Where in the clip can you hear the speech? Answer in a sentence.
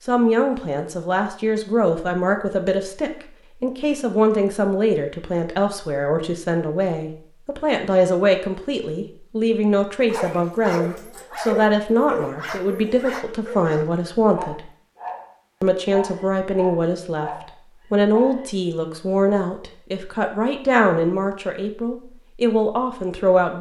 You can hear the speech from 0.1 to 14.7 s, from 15.6 to 17.3 s and from 17.9 to 23.5 s.